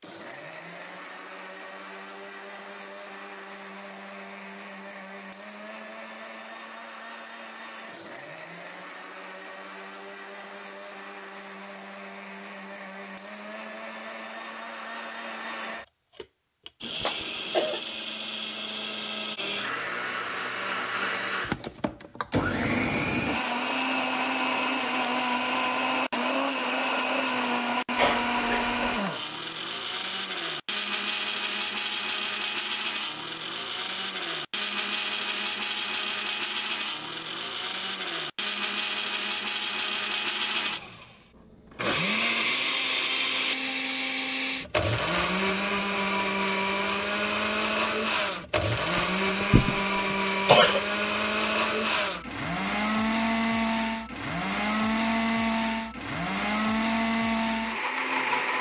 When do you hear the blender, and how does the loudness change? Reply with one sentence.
You can hear the blender from 0.0 to 58.5 s, getting louder.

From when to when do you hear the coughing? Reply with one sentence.
The coughing can be heard from 17.0 to 17.8 s, from 27.9 to 29.0 s and from 49.0 to 50.8 s.